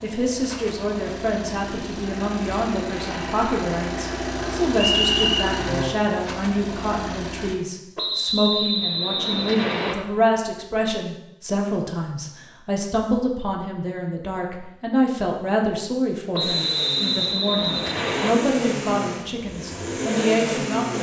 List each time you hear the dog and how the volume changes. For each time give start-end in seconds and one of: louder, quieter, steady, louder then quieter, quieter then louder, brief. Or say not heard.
not heard.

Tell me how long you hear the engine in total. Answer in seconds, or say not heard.
12 s.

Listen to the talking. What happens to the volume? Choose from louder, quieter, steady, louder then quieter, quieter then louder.
steady.